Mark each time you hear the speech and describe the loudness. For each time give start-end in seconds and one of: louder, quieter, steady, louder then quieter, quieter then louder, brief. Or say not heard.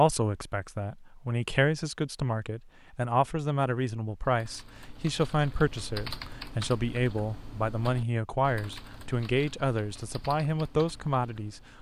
0.0-11.6 steady.